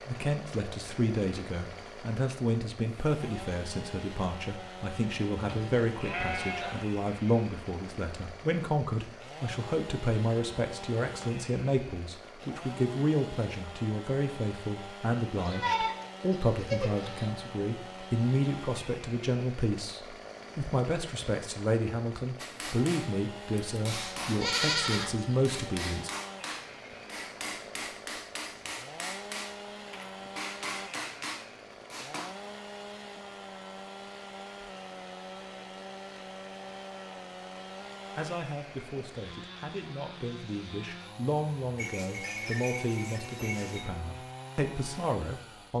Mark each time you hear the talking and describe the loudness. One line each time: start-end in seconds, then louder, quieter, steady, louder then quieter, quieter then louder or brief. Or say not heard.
0.1-26.1 steady
38.1-45.7 louder.